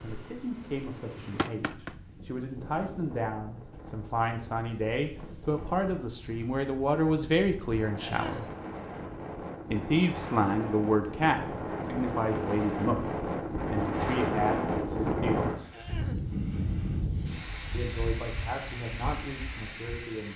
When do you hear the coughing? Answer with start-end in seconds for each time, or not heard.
8.0-8.6, 15.7-16.3.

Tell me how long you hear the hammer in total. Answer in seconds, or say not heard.
2 s.